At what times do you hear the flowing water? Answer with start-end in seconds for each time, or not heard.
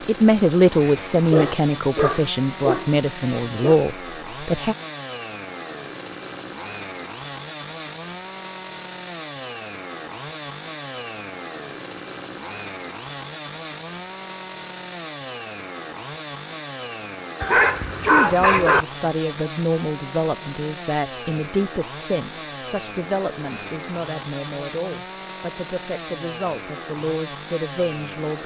not heard.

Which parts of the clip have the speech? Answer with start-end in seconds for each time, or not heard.
0.1-4.8, 18.0-28.4.